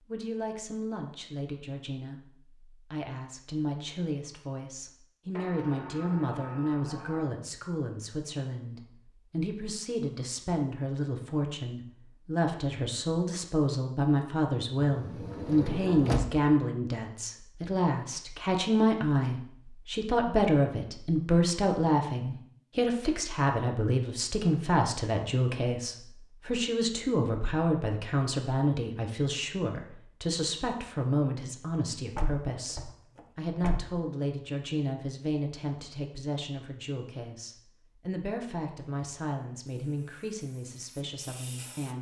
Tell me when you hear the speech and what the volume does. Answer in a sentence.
The speech can be heard from 0.1 to 41.9 s, getting louder then quieter.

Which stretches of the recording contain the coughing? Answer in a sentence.
The coughing can't be heard in this clip.